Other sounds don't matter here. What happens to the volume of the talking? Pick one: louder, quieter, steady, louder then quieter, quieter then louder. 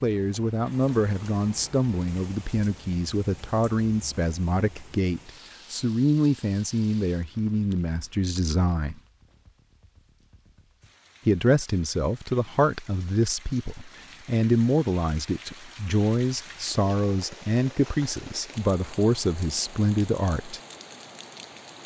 steady.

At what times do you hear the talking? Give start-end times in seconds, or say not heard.
0.0-9.0, 11.2-20.6.